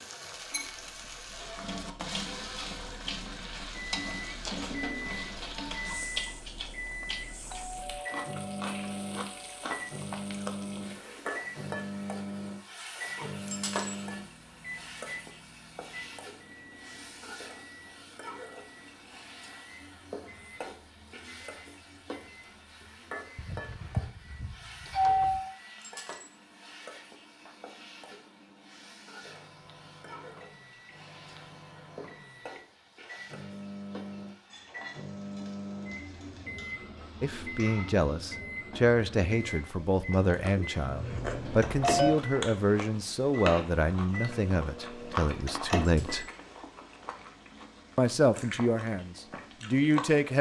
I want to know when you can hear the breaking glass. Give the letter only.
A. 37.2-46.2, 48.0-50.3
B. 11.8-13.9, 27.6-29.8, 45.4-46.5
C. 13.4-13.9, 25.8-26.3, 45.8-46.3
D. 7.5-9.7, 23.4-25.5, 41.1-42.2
C.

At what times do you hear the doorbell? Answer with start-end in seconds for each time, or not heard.
7.5-9.7, 23.4-25.5, 41.1-42.2.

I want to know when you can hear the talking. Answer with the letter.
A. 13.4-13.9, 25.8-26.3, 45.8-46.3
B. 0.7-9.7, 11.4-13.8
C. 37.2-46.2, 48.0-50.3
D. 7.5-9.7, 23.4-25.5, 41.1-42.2
C.